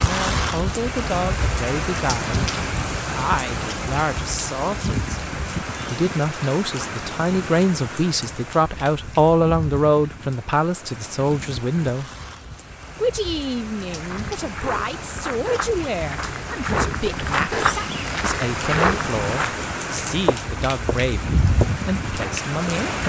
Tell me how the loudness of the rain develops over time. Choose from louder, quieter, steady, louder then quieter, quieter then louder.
quieter then louder.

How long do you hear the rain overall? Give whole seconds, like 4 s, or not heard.
23 s.